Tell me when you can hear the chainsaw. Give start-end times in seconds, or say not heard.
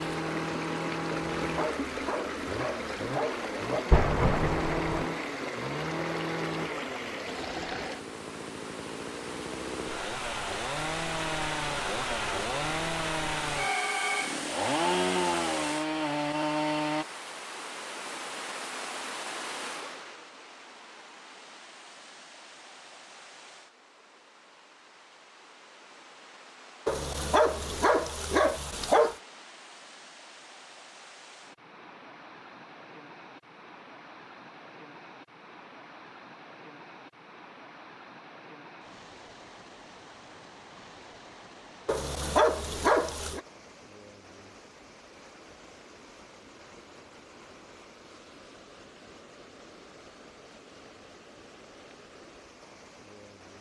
0.0-17.1.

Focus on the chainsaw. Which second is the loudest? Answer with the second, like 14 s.
15 s.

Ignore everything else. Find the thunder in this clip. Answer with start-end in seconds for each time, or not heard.
3.9-5.1.